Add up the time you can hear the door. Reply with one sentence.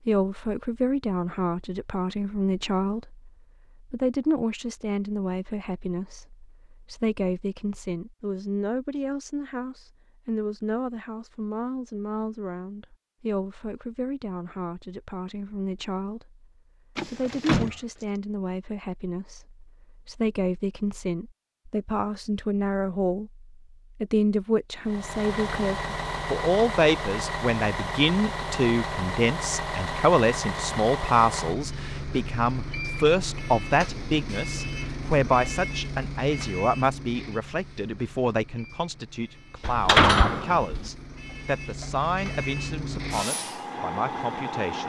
You can hear the door for 2 seconds altogether.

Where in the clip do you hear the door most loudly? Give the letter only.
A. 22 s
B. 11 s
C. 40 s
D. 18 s
C.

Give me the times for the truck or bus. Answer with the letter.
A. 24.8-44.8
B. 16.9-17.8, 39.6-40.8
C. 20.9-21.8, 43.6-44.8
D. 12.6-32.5
A.